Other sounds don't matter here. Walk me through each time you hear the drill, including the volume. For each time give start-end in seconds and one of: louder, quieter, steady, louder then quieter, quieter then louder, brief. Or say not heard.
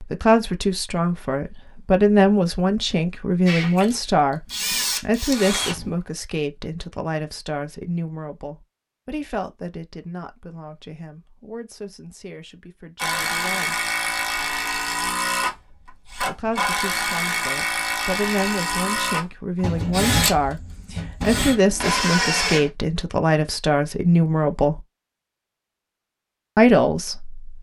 3.5-6.0 brief
12.9-22.7 steady.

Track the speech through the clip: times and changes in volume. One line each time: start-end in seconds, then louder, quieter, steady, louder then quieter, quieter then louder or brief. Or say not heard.
0.0-13.8 quieter
16.2-24.8 louder
26.6-27.4 brief.